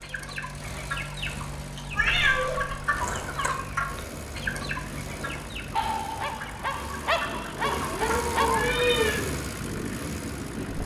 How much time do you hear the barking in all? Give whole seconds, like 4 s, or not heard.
3 s.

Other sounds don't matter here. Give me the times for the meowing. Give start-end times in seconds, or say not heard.
1.9-3.5, 7.6-9.2.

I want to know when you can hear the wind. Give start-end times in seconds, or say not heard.
2.8-10.7.